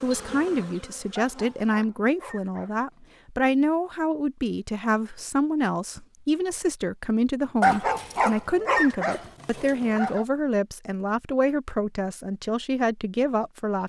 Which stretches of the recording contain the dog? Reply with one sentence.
You can hear the dog from 1.1 to 3.2 s and from 7.6 to 10.2 s.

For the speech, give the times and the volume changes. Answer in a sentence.
The speech can be heard from 0.0 to 13.8 s, at a steady volume.